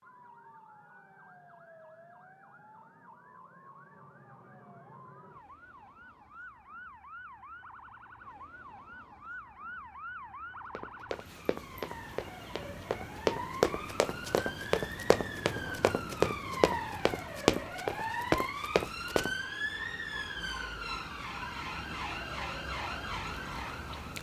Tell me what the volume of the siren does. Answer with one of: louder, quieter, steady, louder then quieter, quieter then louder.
louder.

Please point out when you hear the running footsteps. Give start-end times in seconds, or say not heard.
10.8-19.3.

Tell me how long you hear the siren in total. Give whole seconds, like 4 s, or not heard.
24 s.